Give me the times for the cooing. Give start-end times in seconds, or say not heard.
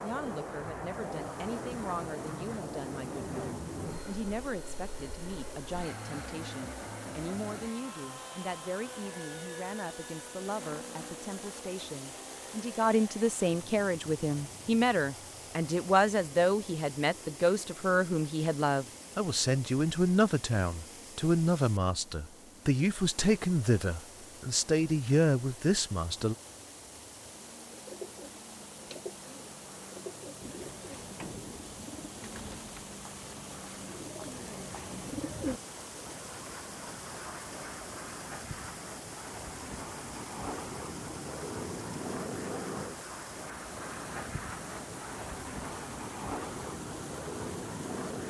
27.7-35.6.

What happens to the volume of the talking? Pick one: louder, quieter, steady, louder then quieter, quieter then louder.
louder.